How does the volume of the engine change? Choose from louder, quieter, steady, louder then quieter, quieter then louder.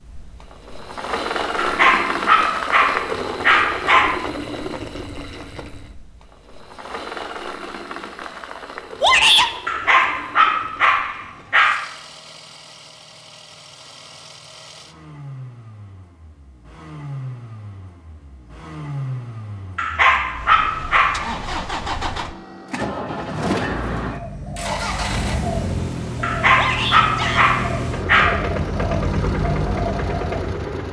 quieter then louder.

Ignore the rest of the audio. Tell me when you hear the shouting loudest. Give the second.
9 s.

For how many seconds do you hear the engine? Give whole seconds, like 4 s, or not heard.
31 s.